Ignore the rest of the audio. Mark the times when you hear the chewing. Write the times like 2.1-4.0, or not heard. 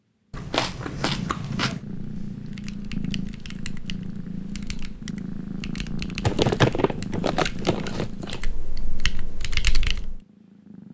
0.3-1.9, 6.2-8.4.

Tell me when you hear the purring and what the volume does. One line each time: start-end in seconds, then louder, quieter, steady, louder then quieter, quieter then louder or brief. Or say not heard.
0.0-10.8 quieter.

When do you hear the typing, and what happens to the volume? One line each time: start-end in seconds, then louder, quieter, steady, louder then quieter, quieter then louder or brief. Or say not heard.
2.0-10.2 louder.